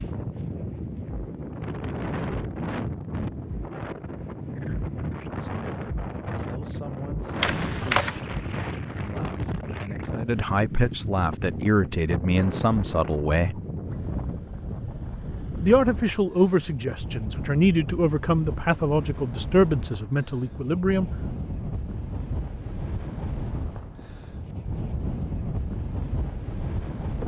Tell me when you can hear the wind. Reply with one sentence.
You can hear the wind from 0.0 to 27.2 s.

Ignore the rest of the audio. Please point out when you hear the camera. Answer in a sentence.
You can hear the camera from 7.4 to 8.2 s.